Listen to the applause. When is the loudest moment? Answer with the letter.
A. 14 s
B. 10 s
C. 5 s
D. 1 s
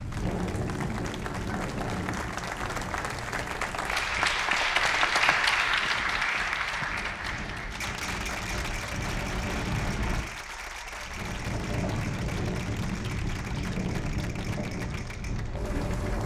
C.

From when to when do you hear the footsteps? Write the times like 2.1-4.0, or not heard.
not heard.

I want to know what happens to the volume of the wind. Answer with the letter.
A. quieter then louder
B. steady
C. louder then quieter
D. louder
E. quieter
A.